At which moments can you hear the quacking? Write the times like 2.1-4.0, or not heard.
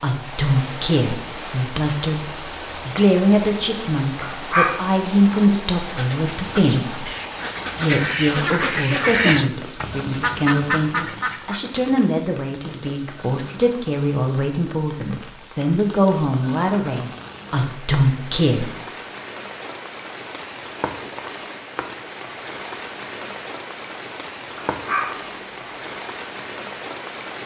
5.8-11.8.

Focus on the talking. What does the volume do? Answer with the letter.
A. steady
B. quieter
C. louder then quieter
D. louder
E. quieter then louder
A.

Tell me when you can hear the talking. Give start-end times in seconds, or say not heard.
0.0-7.2, 7.8-18.8.